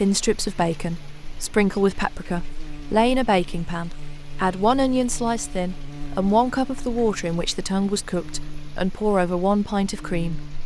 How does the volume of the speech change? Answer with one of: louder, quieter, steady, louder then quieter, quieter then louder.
steady.